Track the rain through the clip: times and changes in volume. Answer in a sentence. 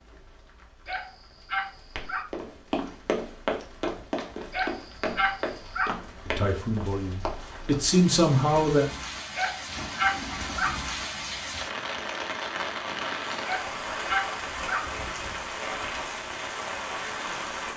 You can hear the rain from 0.0 to 17.7 s, getting louder.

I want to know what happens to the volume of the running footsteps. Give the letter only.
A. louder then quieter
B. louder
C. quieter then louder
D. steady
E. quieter
E.